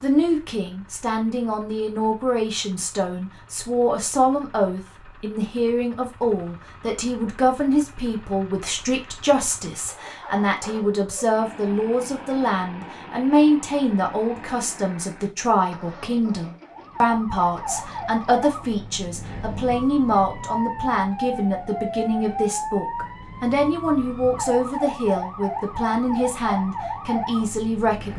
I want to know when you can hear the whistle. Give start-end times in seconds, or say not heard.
not heard.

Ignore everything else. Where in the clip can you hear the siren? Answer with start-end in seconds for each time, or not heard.
16.6-28.1.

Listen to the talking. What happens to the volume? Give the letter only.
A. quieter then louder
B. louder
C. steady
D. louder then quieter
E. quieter
C.